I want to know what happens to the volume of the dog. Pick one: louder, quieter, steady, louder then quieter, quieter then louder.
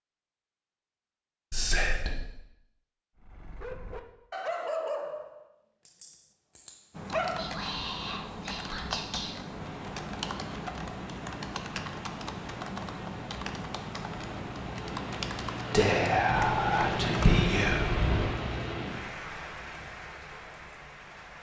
louder then quieter.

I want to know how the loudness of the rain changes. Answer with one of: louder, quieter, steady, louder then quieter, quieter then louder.
louder then quieter.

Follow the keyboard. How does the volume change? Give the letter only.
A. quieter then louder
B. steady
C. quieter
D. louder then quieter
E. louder
B.